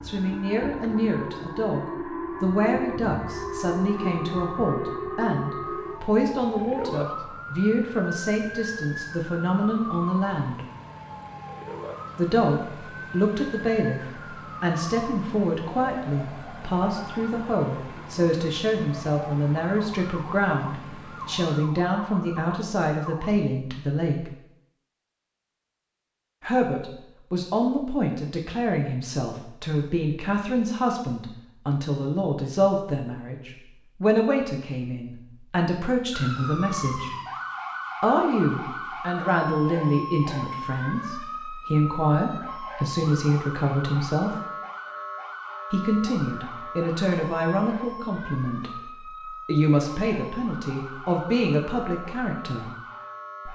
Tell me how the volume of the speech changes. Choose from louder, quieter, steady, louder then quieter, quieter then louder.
steady.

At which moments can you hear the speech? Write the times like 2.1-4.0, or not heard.
0.1-10.6, 12.2-24.3, 26.4-37.1, 38.0-44.4, 45.7-52.7.